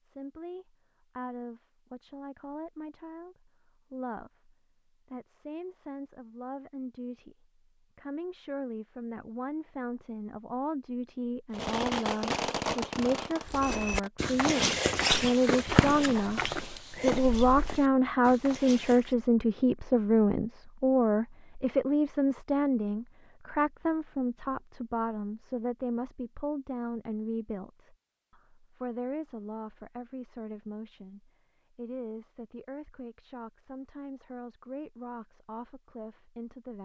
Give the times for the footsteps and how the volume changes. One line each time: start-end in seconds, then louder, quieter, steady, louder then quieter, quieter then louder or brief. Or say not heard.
13.4-19.1 quieter.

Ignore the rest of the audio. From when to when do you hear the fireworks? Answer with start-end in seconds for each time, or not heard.
11.5-17.9.